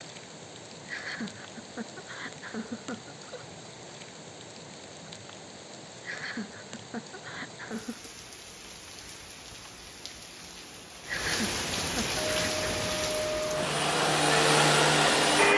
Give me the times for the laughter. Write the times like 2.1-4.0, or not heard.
0.8-3.5, 6.0-8.1, 11.1-12.6.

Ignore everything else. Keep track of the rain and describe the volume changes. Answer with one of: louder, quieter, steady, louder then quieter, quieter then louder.
louder.